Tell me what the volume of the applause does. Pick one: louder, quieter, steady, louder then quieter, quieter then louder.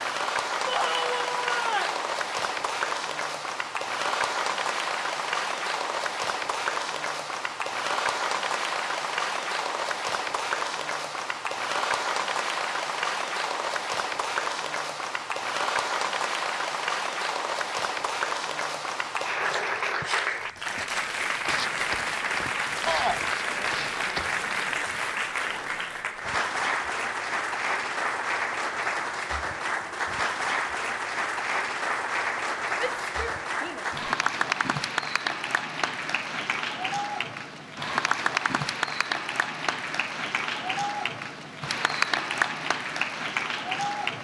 steady.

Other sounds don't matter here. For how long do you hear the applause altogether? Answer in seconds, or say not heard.
44 s.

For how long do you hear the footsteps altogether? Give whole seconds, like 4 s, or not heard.
5 s.